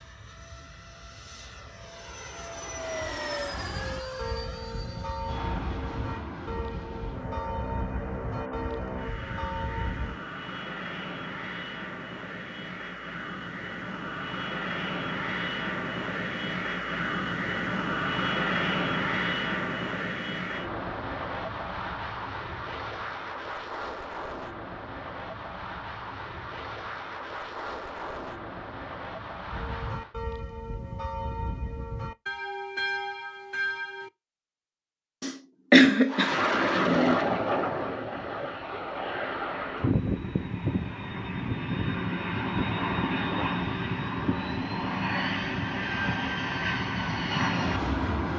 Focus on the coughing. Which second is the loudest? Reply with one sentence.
The loudest moment of the coughing is at 36 seconds.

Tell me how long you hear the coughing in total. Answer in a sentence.
You can hear the coughing for 2 seconds altogether.